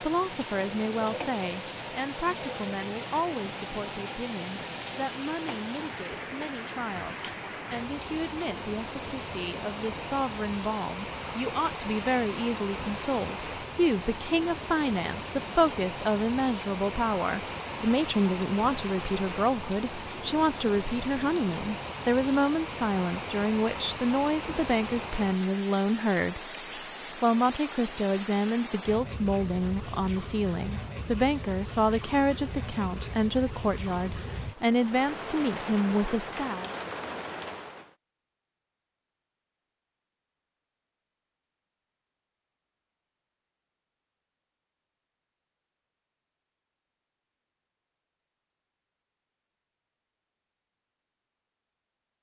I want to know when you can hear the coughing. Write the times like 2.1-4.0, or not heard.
not heard.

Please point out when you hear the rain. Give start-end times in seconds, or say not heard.
0.0-38.0.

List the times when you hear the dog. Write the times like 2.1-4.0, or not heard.
not heard.